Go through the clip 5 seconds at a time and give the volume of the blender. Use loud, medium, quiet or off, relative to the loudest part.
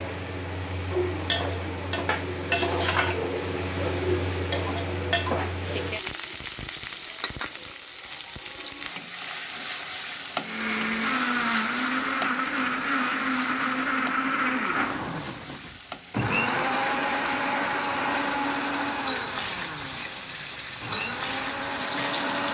off, off, loud, loud, medium.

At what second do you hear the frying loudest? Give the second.
3 s.